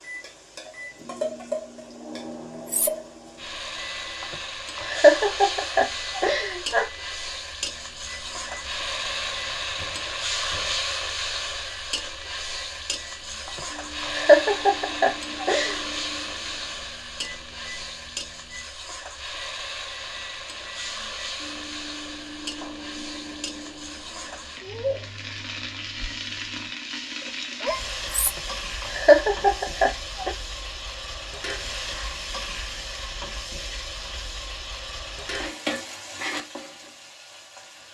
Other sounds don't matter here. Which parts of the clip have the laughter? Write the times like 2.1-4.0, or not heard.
4.2-6.9, 13.4-15.8, 28.2-30.4.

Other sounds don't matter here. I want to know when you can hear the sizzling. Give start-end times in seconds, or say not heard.
0.0-37.8.